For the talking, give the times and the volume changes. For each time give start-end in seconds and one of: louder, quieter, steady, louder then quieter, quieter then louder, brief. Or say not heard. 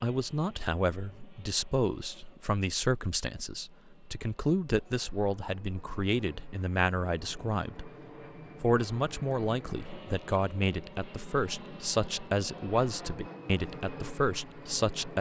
0.0-7.9 steady
8.6-15.1 steady.